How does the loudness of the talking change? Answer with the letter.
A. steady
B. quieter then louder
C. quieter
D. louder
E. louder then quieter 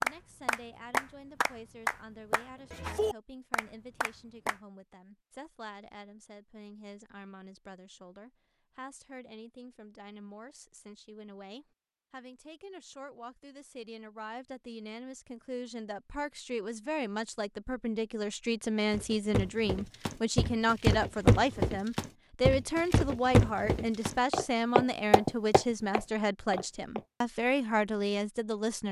D.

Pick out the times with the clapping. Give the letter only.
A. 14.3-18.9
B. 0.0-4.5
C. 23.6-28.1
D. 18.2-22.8
B.